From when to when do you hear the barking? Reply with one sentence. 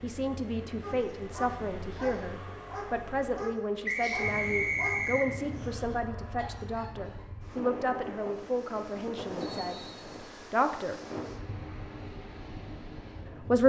The barking can be heard from 0.8 to 7.2 s.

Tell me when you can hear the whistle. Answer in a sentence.
The whistle can be heard from 3.9 to 5.3 s and from 9.4 to 10.5 s.